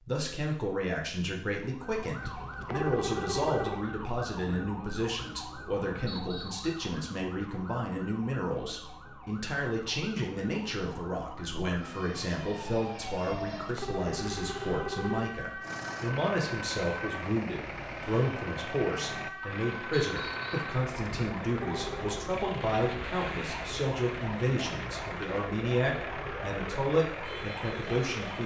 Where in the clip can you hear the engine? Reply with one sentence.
The engine can be heard from 15.6 to 28.4 s.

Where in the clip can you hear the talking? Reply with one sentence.
You can hear the talking from 0.1 to 28.4 s.